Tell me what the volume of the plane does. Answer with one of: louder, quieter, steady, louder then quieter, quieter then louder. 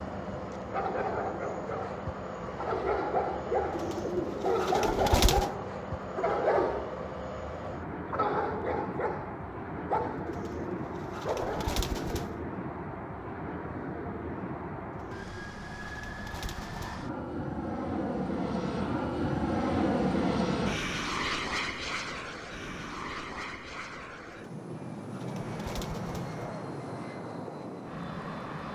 louder then quieter.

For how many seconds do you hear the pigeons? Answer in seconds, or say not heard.
8 s.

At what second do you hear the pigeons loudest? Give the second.
5 s.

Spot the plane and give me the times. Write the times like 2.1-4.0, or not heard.
0.0-28.7.